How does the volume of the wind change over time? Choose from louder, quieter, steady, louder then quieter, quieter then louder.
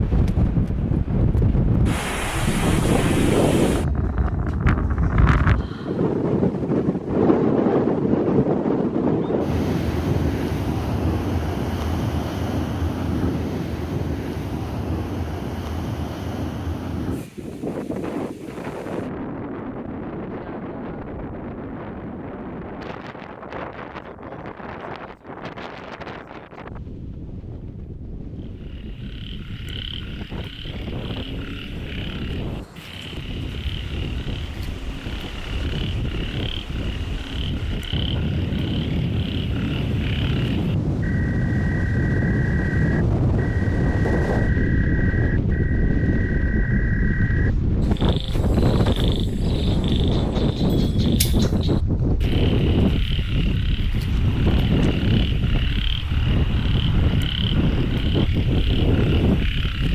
quieter then louder.